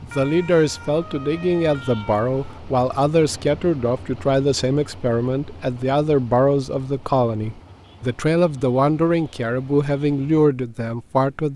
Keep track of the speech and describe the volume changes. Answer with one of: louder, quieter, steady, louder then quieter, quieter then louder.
steady.